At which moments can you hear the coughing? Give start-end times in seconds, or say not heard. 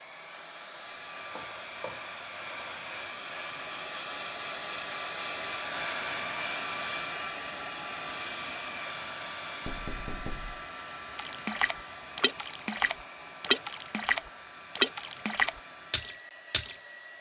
not heard.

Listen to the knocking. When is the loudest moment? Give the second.
10 s.